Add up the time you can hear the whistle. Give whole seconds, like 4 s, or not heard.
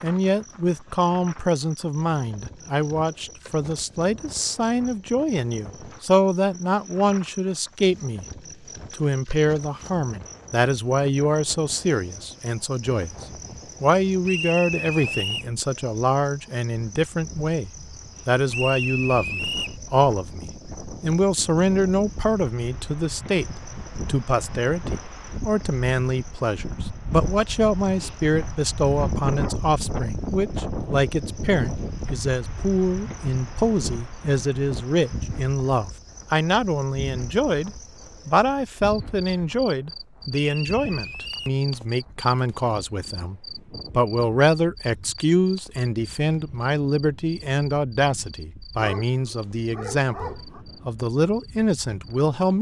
4 s.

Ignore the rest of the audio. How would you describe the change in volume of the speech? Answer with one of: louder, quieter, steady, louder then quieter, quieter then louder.
steady.